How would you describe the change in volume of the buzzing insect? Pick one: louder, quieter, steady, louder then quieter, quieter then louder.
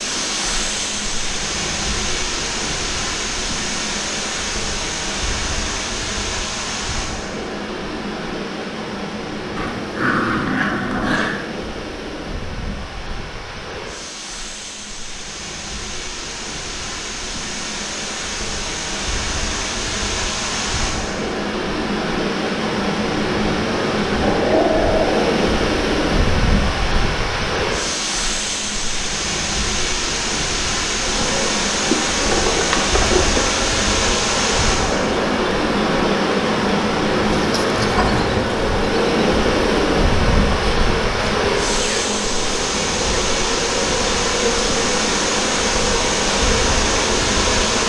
steady.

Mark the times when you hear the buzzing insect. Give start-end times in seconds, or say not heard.
30.9-47.8.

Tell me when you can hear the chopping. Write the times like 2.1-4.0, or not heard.
not heard.